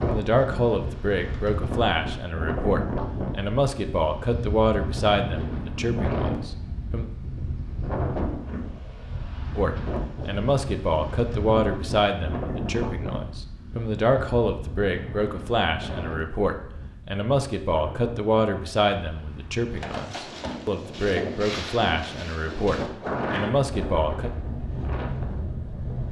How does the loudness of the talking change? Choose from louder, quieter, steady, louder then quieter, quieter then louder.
steady.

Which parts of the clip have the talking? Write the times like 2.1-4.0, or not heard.
0.0-7.1, 9.6-24.3.